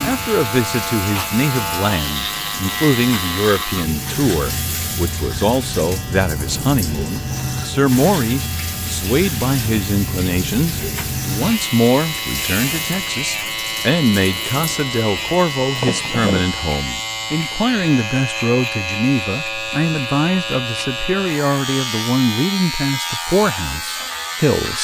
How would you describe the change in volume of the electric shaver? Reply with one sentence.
The loudness of the electric shaver stays about the same.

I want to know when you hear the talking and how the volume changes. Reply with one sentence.
You can hear the talking from 0.0 to 24.7 s, at a steady volume.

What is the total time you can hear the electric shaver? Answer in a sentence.
You can hear the electric shaver for 25 seconds altogether.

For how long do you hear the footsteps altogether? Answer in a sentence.
The footsteps can't be heard in this clip.